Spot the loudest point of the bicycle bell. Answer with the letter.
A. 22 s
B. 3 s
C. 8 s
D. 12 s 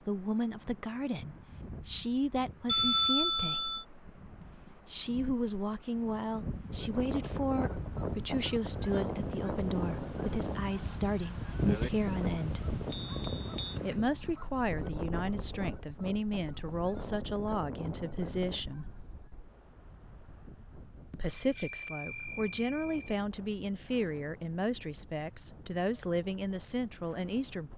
B.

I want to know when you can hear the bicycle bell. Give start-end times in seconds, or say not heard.
2.6-3.9, 12.9-13.8, 21.2-23.2.